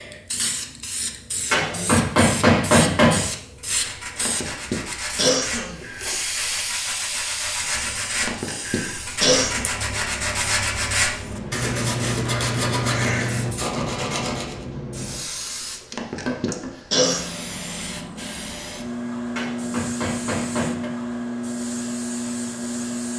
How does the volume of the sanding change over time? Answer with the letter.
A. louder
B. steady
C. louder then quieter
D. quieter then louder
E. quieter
A.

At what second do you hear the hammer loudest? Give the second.
3 s.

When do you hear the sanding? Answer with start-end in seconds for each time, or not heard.
3.5-14.6.